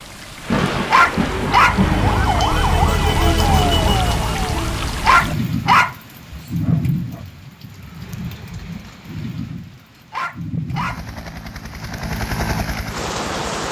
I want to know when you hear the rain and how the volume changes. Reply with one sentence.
The rain can be heard from 0.0 to 13.6 s, getting quieter.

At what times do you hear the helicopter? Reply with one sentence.
You can hear the helicopter from 10.7 to 13.6 s.